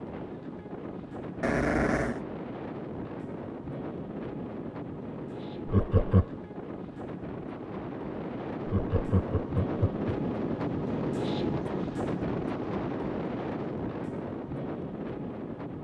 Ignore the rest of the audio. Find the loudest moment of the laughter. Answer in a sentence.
The loudest moment of the laughter is at 6 seconds.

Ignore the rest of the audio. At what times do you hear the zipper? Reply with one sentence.
You can't hear the zipper here.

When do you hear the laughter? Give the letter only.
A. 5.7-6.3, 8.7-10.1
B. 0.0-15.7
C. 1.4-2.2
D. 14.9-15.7
A.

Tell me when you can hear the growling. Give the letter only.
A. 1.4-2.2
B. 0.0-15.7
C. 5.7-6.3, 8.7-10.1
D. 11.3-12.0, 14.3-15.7
A.